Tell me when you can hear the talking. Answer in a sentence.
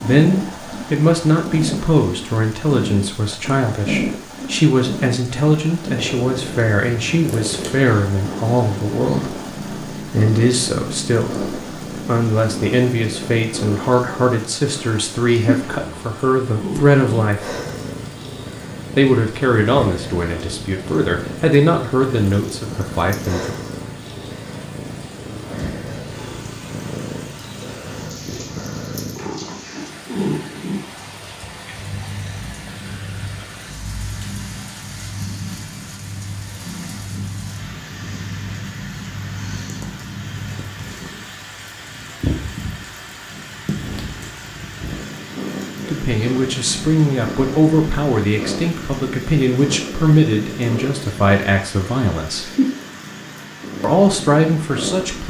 The talking can be heard from 0.0 to 17.6 s, from 18.9 to 23.6 s, from 45.9 to 52.5 s and from 53.8 to 55.2 s.